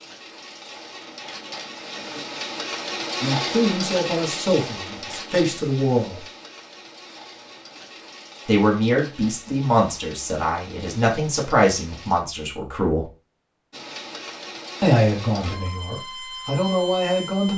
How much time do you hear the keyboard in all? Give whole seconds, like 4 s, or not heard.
not heard.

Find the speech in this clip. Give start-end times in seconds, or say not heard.
3.2-6.2, 8.4-13.1, 14.8-17.5.